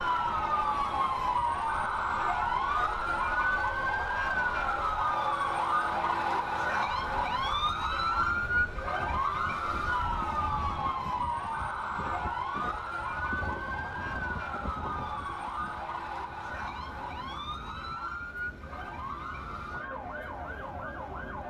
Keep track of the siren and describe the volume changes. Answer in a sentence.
The loudness of the siren goes down.